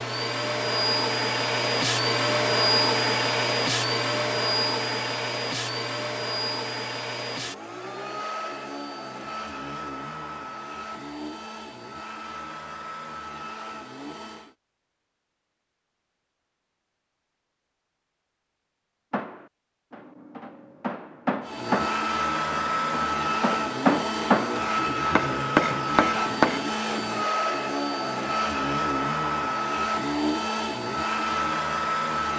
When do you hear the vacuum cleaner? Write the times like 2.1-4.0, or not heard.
0.0-14.6, 21.4-32.3.